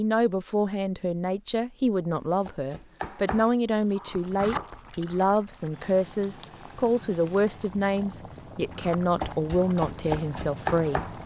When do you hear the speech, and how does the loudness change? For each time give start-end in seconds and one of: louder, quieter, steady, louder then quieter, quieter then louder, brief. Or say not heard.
0.0-11.2 steady.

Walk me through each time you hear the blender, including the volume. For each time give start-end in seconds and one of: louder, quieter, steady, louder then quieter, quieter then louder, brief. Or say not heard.
not heard.